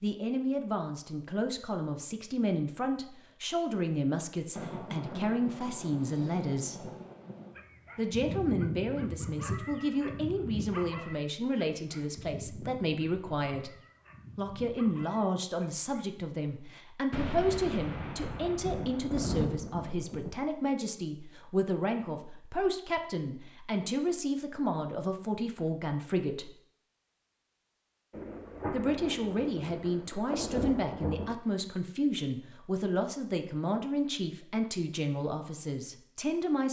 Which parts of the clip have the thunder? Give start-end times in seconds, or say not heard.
4.5-7.5, 17.1-20.4, 28.1-31.4.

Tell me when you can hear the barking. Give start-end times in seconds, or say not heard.
7.5-16.1.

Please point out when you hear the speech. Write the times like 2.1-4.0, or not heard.
0.0-6.8, 8.0-13.8, 14.3-26.5, 28.7-36.6.